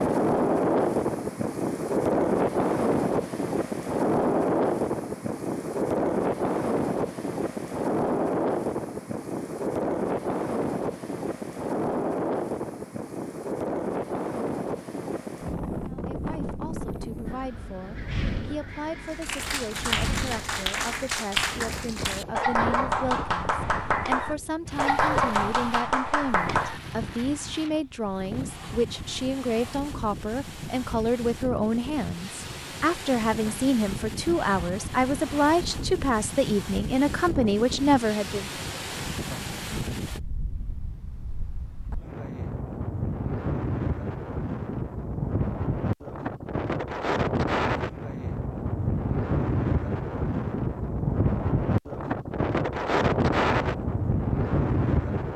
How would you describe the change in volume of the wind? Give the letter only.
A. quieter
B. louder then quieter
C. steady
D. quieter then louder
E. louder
D.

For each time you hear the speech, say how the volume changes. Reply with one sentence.
You can hear the speech from 15.8 to 38.5 s, getting louder.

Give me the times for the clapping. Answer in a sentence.
You can hear the clapping from 19.0 to 26.8 s.